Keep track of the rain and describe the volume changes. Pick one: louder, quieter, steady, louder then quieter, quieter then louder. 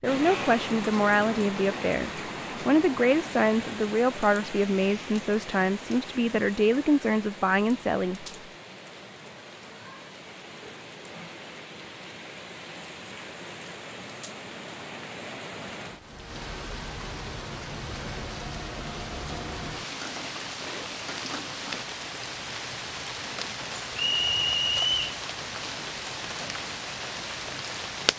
quieter then louder.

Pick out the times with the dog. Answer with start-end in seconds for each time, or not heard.
not heard.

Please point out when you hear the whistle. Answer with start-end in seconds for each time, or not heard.
23.9-25.2.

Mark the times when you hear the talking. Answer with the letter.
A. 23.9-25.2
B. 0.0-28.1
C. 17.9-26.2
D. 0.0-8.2
D.